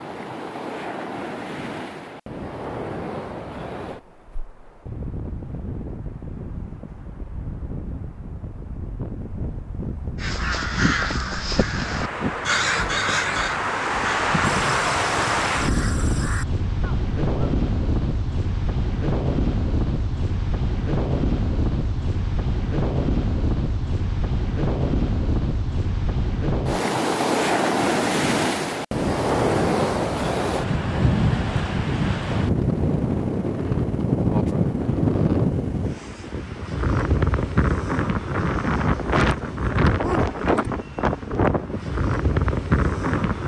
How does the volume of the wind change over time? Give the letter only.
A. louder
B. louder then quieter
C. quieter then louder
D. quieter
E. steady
A.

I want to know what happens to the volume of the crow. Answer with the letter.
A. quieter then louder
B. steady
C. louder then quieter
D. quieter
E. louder
D.